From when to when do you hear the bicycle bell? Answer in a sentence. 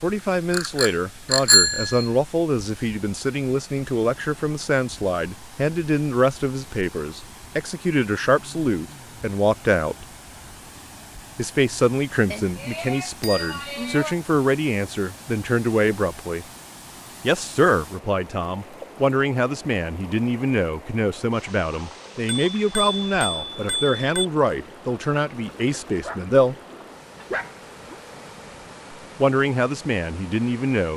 You can hear the bicycle bell from 0.5 to 2.0 s, from 12.3 to 14.2 s and from 22.2 to 24.2 s.